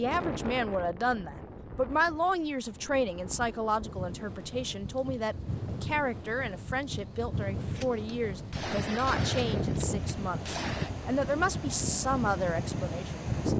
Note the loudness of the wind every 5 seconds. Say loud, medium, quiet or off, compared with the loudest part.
medium, loud, loud.